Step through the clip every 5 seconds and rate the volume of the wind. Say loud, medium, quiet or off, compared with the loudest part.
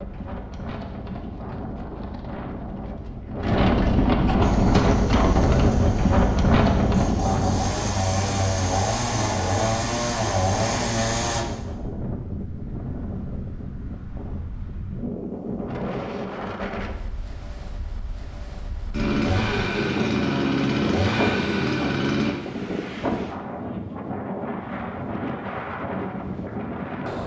loud, loud, medium, medium, medium, medium.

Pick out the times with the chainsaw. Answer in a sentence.
You can hear the chainsaw from 4.4 to 11.4 s and from 18.9 to 22.4 s.